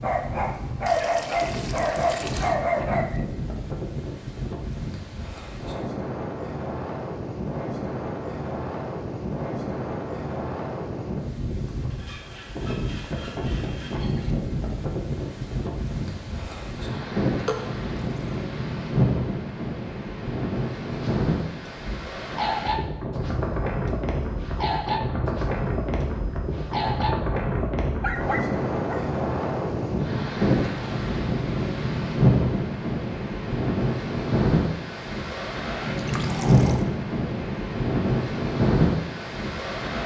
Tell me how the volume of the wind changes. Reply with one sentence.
The loudness of the wind goes up.